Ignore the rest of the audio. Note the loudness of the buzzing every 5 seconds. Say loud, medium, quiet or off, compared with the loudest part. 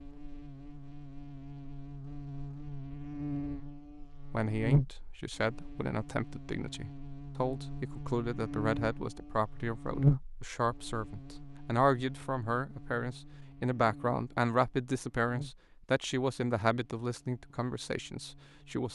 loud, medium, loud, quiet.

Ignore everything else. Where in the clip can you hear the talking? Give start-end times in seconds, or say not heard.
4.3-18.9.